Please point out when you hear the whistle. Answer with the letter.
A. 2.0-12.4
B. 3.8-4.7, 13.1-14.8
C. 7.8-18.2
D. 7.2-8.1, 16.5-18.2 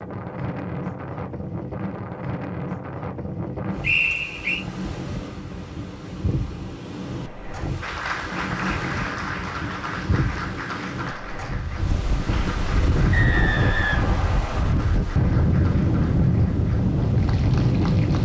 B.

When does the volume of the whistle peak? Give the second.
4 s.